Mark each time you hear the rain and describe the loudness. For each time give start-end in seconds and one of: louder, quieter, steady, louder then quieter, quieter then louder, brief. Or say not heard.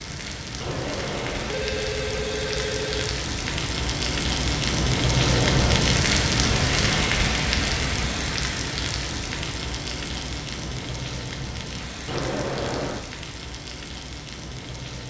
0.0-15.0 louder then quieter.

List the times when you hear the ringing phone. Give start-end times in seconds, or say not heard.
0.6-3.2, 5.2-5.8, 12.1-13.0.